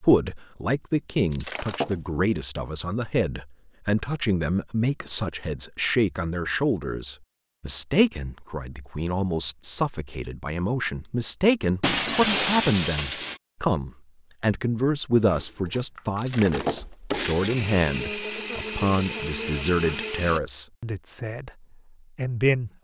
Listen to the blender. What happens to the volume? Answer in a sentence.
The volume of the blender goes up.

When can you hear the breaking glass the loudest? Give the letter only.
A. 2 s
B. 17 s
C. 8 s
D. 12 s
D.